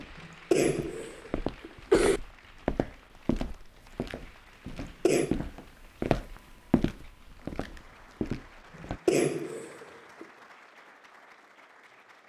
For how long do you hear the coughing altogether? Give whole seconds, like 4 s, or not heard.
4 s.